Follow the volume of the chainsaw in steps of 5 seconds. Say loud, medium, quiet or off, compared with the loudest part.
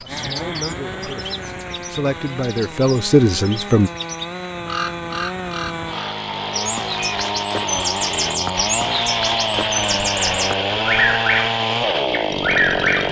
medium, loud, loud.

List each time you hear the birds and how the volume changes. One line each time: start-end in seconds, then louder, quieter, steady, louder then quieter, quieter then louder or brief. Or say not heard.
0.0-13.0 louder.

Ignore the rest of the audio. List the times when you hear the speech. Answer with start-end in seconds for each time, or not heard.
0.0-3.9.